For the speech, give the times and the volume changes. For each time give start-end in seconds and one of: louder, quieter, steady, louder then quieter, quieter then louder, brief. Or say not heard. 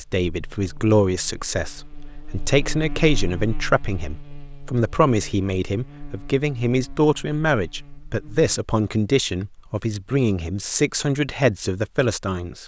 0.0-12.6 steady.